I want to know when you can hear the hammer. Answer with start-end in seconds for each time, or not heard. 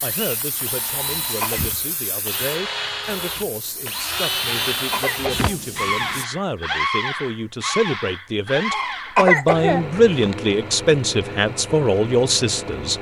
not heard.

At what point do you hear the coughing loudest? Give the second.
9 s.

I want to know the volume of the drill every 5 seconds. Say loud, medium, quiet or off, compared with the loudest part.
loud, loud, medium.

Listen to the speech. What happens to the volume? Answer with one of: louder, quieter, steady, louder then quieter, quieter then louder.
louder.